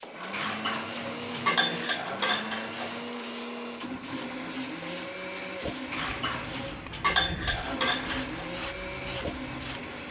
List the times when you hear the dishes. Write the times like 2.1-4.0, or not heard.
0.3-3.1, 5.9-8.4.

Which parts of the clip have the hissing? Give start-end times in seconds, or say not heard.
0.0-10.0.